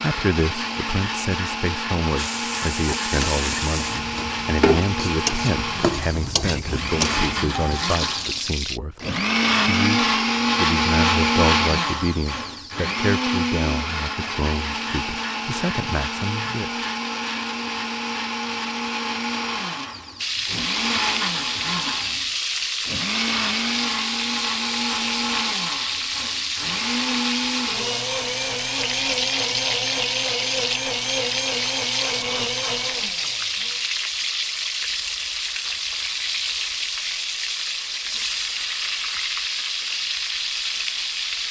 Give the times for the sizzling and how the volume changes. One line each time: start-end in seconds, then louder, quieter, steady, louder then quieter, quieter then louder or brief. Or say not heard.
2.1-8.8 steady
20.1-41.4 steady.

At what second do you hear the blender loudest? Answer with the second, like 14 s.
11 s.